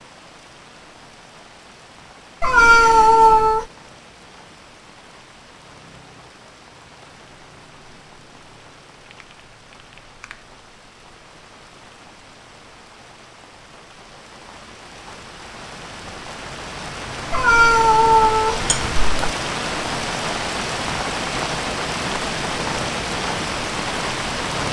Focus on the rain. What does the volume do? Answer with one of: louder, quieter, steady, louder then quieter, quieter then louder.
louder.